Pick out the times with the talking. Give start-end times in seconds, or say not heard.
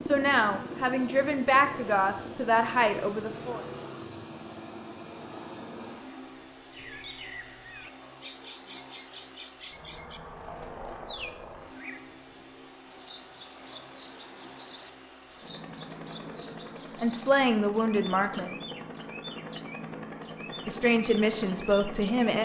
0.0-3.6, 16.9-18.6, 20.6-22.3.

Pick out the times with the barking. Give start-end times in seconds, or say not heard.
not heard.